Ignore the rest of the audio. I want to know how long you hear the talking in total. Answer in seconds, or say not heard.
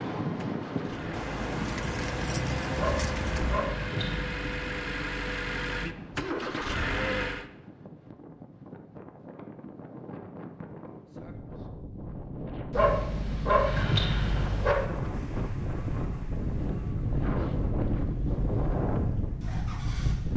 not heard.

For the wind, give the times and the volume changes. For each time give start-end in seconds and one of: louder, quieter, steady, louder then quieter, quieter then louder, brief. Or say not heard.
0.0-20.3 quieter then louder.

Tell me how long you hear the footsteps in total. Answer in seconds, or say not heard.
not heard.